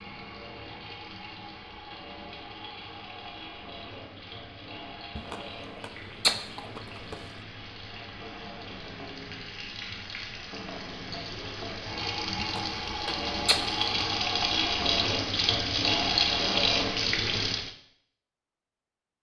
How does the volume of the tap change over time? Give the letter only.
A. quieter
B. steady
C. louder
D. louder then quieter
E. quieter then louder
C.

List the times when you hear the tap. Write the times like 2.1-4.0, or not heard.
0.0-17.7.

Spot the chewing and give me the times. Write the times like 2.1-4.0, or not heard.
5.2-7.2, 12.3-13.8.